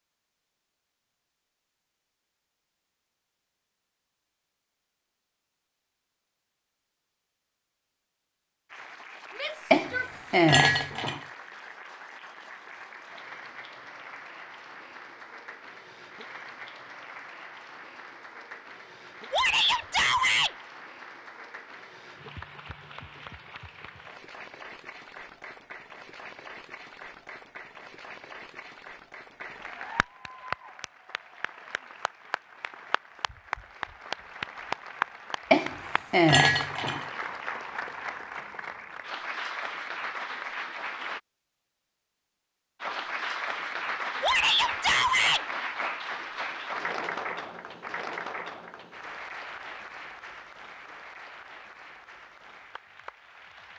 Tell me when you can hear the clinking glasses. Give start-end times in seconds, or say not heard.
9.7-11.2, 35.5-37.0.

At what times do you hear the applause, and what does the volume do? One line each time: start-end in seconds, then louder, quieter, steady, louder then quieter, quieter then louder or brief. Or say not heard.
8.7-41.2 louder
42.8-53.7 quieter.